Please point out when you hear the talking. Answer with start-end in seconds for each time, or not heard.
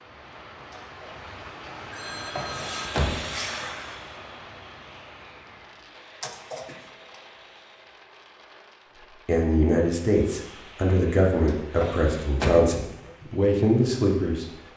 9.2-14.4.